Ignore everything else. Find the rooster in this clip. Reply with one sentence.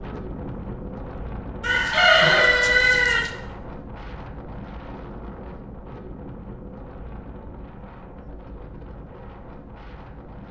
You can hear the rooster from 1.6 to 3.3 s.